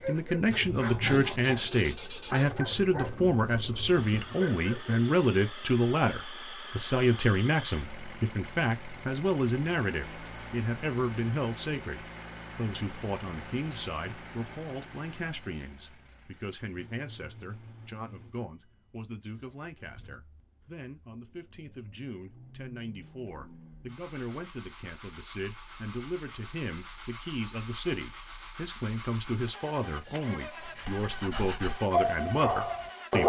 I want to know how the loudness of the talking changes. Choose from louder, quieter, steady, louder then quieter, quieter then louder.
quieter then louder.